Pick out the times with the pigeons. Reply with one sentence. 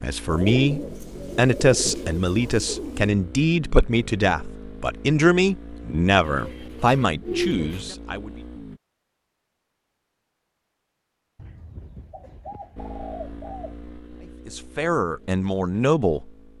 You can hear the pigeons from 0.2 to 3.1 s, from 6.2 to 7.8 s and from 11.3 to 13.8 s.